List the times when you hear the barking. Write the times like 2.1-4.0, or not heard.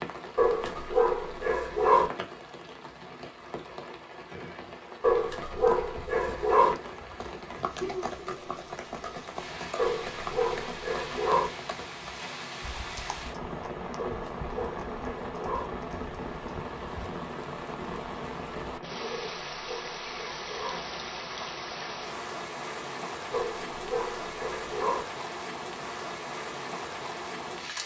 0.3-2.1, 5.0-6.8, 9.8-11.5, 13.9-15.7, 19.1-20.8, 23.3-25.1.